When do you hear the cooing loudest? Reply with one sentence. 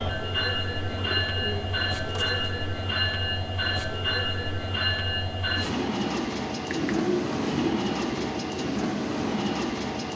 The volume of the cooing peaks at 7 seconds.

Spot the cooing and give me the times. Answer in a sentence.
You can hear the cooing from 0.8 to 2.5 s and from 6.7 to 8.7 s.